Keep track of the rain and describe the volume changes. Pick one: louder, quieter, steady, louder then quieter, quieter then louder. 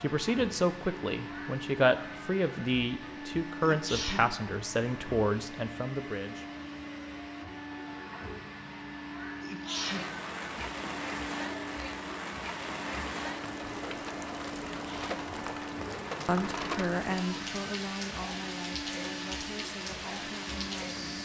steady.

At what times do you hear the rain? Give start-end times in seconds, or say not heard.
9.7-21.1.